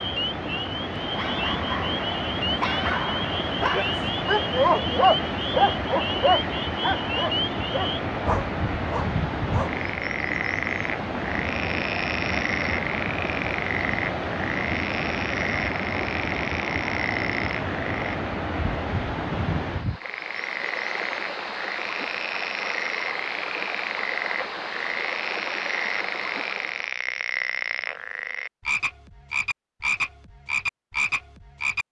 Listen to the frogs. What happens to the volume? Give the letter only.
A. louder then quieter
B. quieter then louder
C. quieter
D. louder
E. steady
E.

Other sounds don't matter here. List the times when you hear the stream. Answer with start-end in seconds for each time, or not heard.
0.0-27.0.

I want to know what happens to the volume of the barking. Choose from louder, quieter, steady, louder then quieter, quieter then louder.
louder then quieter.